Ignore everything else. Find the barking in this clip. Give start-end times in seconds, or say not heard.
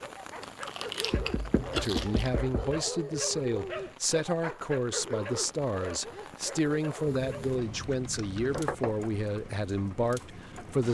0.0-7.6.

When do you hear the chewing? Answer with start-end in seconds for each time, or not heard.
0.4-2.4, 7.1-8.7.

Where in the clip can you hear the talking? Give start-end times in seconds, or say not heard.
1.7-10.8.